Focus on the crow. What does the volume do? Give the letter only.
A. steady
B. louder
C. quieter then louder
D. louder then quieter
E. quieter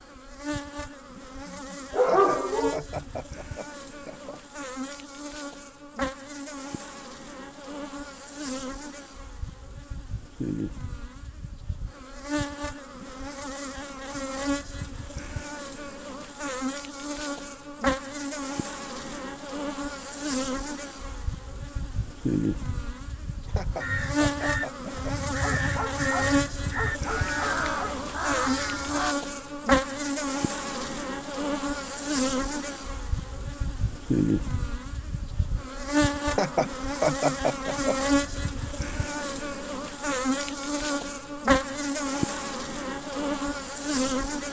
A.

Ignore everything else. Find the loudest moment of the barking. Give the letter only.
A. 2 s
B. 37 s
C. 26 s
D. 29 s
A.